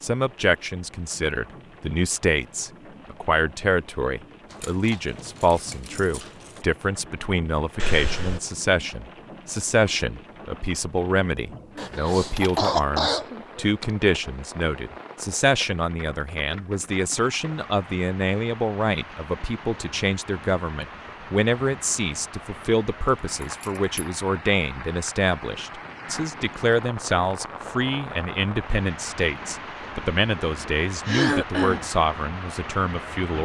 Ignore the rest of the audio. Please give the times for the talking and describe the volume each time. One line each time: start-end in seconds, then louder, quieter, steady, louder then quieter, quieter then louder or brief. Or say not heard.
0.0-33.3 steady.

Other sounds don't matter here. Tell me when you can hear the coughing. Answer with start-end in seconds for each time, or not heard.
7.8-8.4, 11.9-13.8, 31.1-31.9.